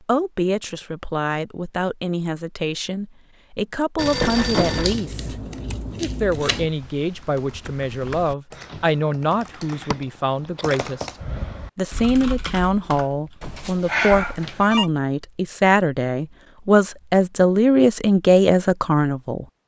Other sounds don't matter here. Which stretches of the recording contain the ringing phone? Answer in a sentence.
You can hear the ringing phone from 4.0 to 5.0 s and from 13.4 to 14.9 s.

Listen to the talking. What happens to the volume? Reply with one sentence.
The volume of the talking goes up.